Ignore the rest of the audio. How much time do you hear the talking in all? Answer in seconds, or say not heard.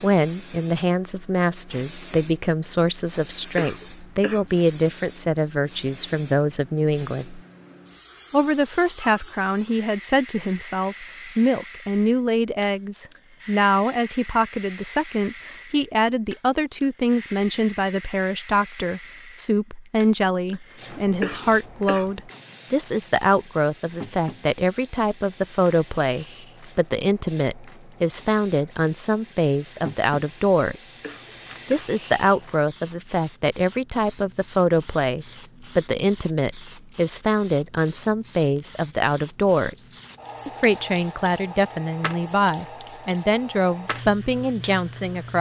44 s.